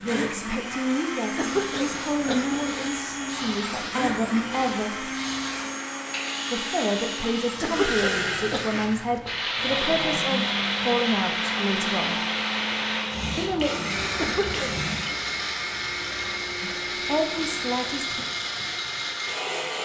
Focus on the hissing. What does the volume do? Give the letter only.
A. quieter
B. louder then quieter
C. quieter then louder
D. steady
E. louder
B.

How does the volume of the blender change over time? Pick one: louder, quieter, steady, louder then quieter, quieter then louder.
steady.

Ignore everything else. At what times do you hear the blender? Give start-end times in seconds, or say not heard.
0.0-19.8.